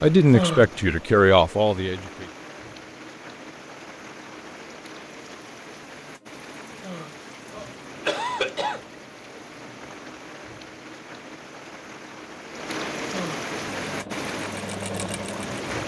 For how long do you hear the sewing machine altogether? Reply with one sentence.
You can hear the sewing machine for 2 seconds altogether.